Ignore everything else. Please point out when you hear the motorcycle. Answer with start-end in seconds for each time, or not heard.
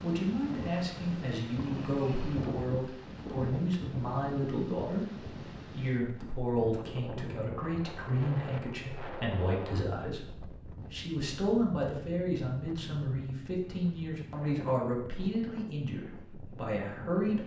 not heard.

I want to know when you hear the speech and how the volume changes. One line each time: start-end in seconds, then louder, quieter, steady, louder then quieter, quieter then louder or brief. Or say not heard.
0.0-17.4 steady.